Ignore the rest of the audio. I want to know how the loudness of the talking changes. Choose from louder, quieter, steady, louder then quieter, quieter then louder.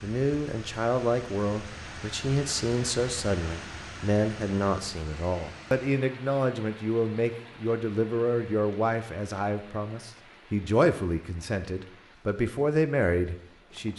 steady.